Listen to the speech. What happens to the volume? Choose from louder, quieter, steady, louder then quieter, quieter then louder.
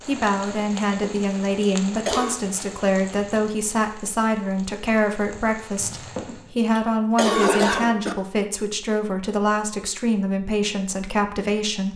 steady.